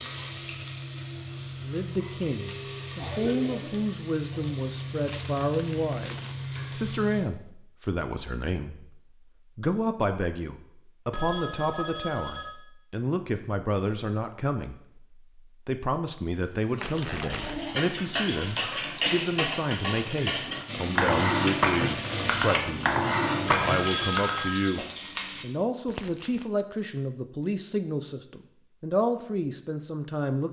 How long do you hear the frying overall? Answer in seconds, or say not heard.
12 s.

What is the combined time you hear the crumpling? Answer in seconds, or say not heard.
3 s.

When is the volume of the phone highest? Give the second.
24 s.